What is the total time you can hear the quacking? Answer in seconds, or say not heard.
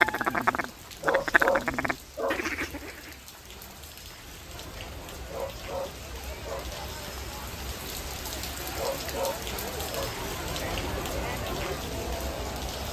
3 s.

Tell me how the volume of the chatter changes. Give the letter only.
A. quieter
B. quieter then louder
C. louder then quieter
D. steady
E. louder
E.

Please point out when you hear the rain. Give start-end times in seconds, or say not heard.
0.0-12.8.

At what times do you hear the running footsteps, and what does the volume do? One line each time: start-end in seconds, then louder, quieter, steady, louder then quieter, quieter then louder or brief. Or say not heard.
not heard.